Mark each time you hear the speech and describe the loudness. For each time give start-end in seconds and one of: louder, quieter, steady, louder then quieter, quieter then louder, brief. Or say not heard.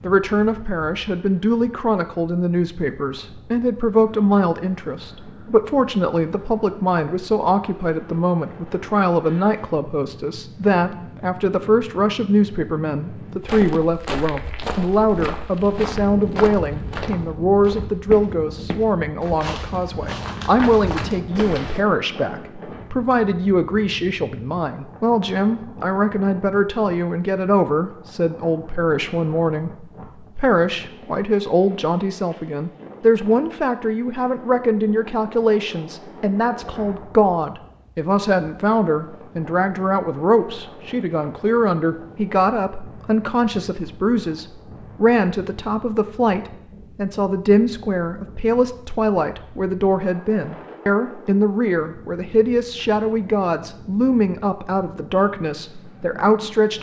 0.0-56.7 steady.